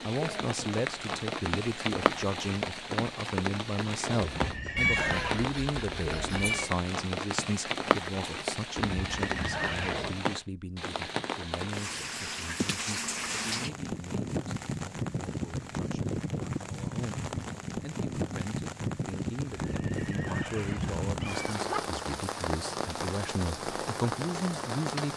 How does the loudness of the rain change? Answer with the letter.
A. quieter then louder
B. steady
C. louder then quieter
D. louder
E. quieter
B.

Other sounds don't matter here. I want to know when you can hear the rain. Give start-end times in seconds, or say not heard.
0.0-25.1.